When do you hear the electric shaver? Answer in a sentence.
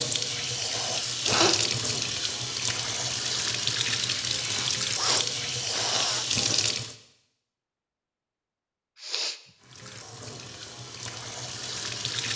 The electric shaver can't be heard in this clip.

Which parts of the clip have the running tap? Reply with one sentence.
You can hear the running tap from 0.0 to 7.0 s and from 9.6 to 12.3 s.